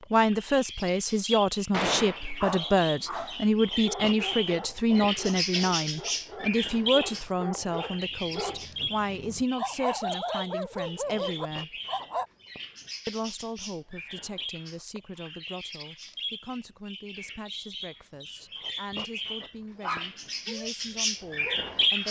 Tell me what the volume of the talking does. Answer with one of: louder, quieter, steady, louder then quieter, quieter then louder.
quieter.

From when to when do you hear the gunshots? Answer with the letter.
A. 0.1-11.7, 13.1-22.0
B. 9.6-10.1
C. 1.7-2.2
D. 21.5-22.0
C.